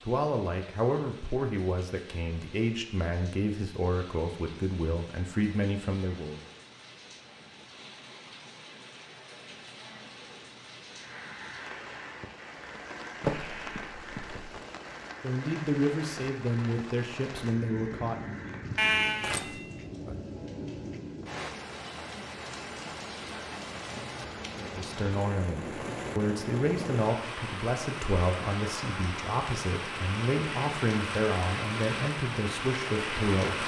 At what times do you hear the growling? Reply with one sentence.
You can hear the growling from 19.8 to 21.3 s.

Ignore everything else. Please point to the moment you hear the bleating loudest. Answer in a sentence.
The loudest moment of the bleating is at 19 seconds.